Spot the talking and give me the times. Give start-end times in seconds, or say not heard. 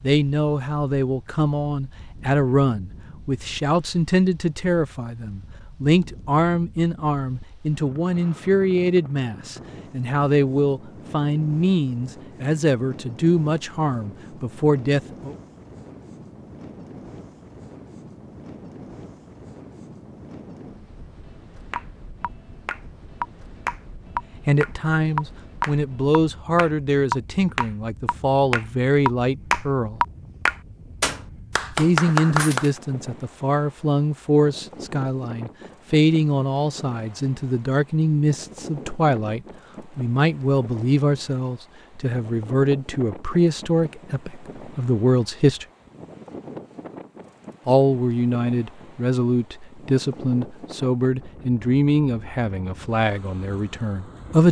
0.0-15.3, 24.4-30.0, 31.8-45.6, 47.6-54.4.